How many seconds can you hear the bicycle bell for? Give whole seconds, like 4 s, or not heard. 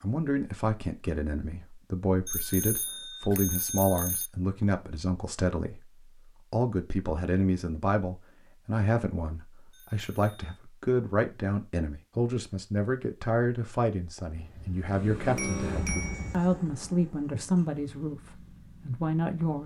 5 s.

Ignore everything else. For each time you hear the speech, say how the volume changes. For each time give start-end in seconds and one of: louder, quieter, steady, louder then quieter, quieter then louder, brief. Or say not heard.
0.0-19.6 steady.